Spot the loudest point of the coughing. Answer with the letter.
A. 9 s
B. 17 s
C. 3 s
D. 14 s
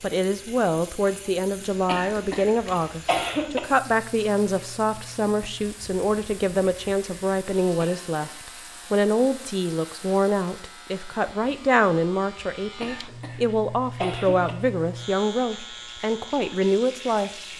C.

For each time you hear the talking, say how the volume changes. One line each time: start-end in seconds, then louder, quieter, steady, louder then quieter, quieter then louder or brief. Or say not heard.
0.0-17.3 steady.